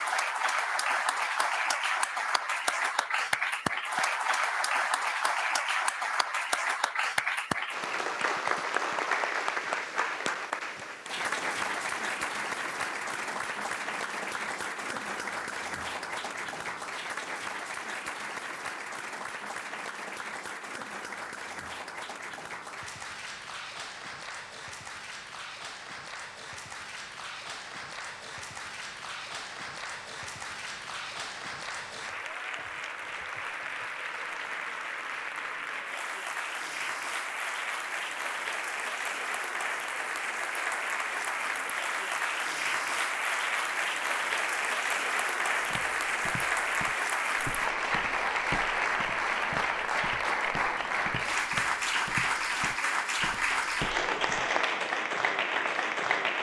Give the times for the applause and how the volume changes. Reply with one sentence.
You can hear the applause from 0.0 to 56.3 s, getting quieter then louder.